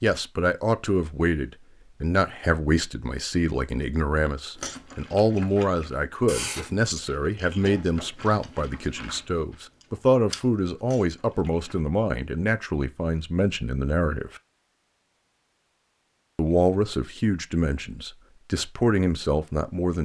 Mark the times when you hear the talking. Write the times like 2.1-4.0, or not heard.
0.0-14.4, 16.4-19.9.